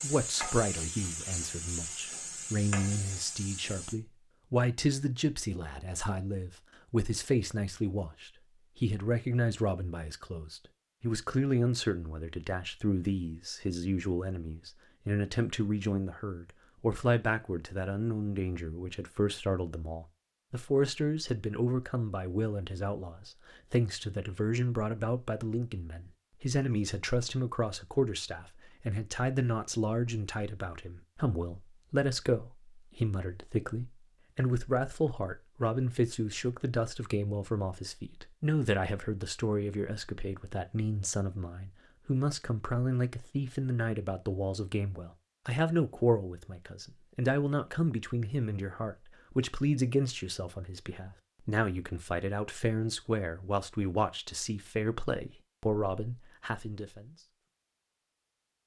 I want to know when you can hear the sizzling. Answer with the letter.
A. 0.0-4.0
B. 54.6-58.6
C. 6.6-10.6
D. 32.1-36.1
A.